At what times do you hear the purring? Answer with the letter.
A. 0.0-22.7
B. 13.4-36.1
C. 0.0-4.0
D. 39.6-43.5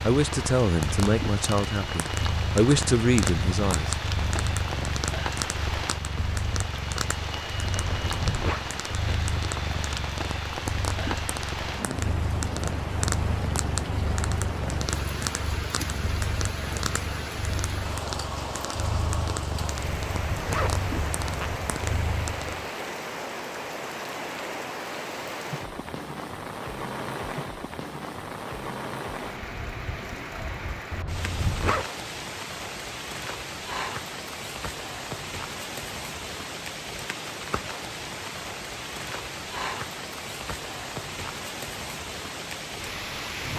A.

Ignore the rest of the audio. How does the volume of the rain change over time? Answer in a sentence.
The loudness of the rain stays about the same.